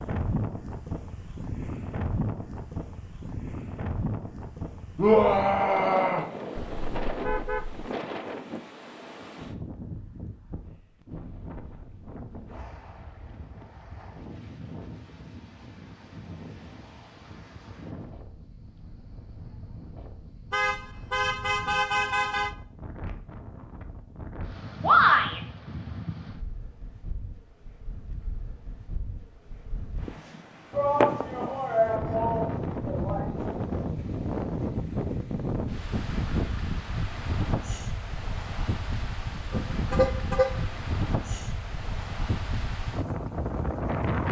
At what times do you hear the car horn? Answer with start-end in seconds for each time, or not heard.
6.5-7.9, 20.5-22.6, 39.5-40.6.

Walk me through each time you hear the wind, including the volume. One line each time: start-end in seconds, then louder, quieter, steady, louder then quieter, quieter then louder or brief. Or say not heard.
0.0-44.2 quieter then louder.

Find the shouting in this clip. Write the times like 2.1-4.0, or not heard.
5.0-6.2, 24.8-25.4, 30.7-33.3.